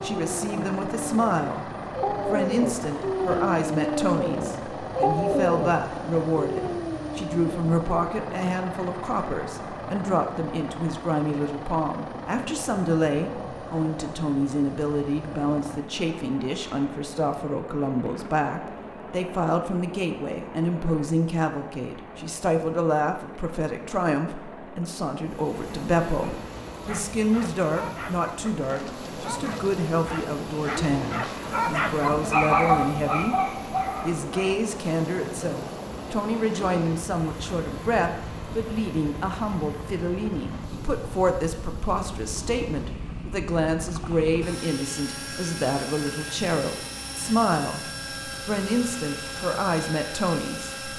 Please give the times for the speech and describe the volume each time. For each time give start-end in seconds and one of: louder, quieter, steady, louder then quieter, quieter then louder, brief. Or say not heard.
0.0-1.6 brief
2.2-33.4 steady
34.0-47.8 steady
48.5-50.9 brief.